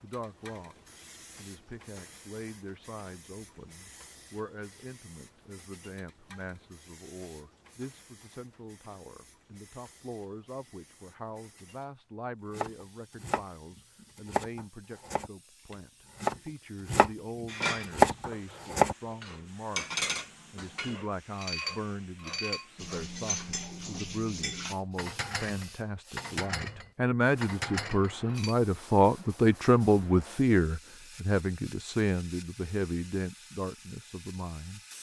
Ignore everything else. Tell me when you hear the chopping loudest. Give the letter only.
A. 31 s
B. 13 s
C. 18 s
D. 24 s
C.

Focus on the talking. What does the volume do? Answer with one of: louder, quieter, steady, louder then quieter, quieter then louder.
louder.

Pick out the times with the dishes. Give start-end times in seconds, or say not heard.
17.4-28.6.